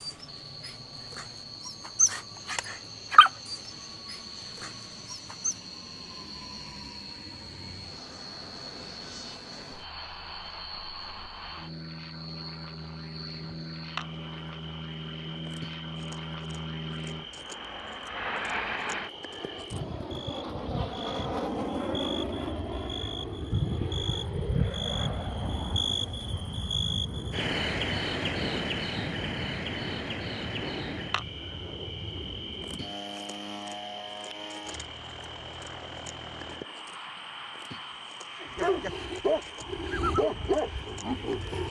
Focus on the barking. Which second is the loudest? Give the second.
3 s.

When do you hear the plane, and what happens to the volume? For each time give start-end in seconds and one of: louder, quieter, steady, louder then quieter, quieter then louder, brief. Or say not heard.
0.0-41.6 louder then quieter.